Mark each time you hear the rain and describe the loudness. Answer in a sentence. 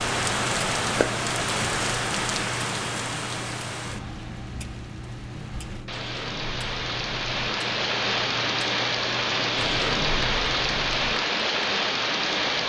You can hear the rain from 0.0 to 12.6 s, getting quieter then louder.